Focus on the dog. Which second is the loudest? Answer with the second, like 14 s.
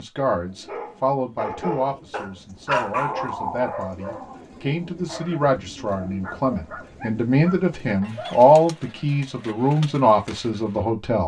3 s.